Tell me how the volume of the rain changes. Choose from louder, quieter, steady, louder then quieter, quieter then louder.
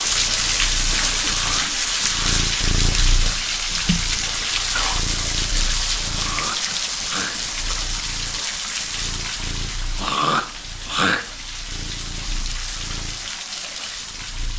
quieter.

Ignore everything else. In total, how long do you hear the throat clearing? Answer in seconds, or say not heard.
4 s.